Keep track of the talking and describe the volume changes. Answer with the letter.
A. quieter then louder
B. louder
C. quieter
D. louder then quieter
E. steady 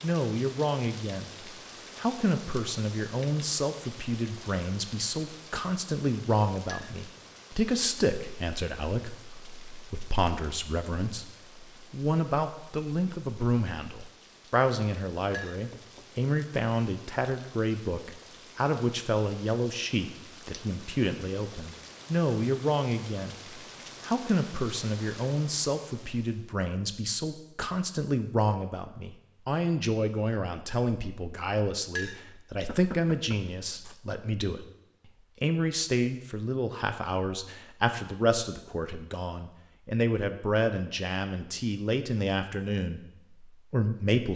E.